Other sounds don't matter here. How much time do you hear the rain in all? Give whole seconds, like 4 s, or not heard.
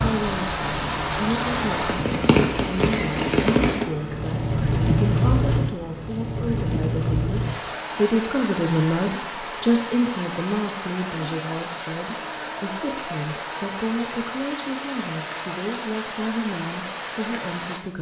18 s.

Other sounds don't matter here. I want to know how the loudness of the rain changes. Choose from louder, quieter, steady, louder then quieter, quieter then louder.
quieter.